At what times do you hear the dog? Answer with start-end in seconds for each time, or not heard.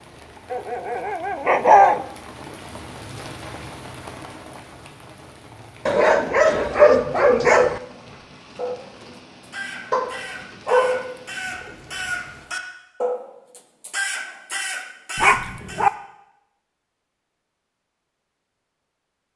0.5-2.0, 5.8-7.8, 9.9-11.2, 15.2-15.9.